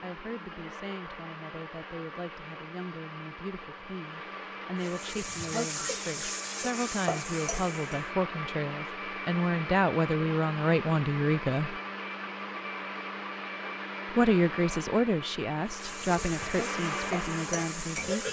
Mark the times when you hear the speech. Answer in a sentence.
The speech can be heard from 0.0 to 11.8 s and from 14.1 to 18.2 s.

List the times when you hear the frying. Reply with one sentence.
You can hear the frying from 4.8 to 8.1 s and from 15.7 to 18.2 s.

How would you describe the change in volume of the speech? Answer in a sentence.
The loudness of the speech goes up, then down.